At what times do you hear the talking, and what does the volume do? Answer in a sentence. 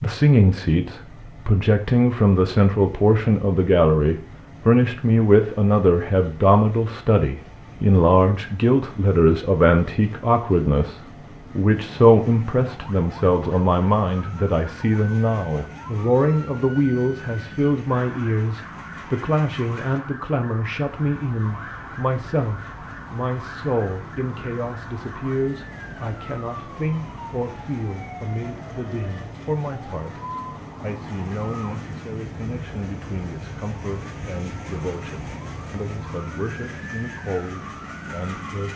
You can hear the talking from 0.0 to 38.7 s, getting quieter.